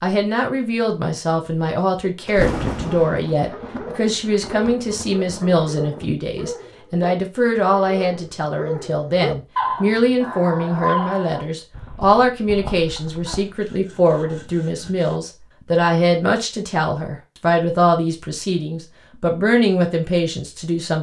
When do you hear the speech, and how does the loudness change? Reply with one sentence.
You can hear the speech from 0.0 to 20.9 s, at a steady volume.